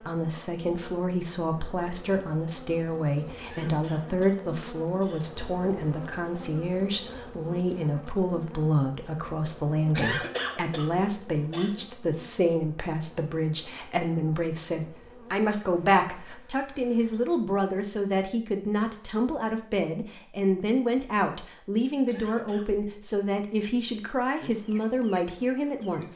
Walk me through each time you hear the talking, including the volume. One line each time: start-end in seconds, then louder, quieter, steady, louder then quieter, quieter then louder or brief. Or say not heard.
0.0-26.1 steady.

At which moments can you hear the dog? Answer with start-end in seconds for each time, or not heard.
not heard.